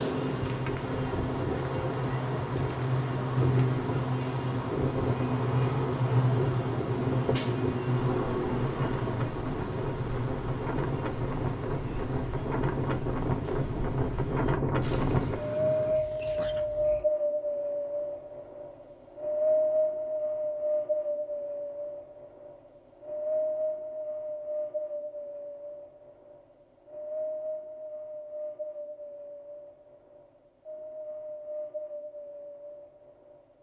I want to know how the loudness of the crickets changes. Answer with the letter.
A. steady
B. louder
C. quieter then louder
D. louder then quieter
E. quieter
E.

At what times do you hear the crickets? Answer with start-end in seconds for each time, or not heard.
0.0-17.1.